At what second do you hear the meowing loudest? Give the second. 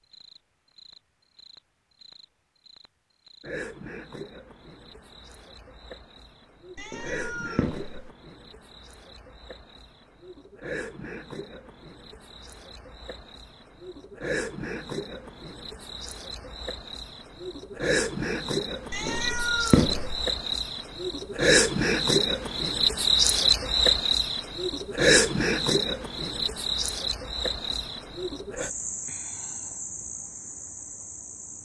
20 s.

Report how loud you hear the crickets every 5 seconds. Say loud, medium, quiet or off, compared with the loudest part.
quiet, quiet, quiet, medium, loud, loud, quiet.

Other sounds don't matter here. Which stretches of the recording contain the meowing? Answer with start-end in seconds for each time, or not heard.
6.8-8.1, 18.9-20.2.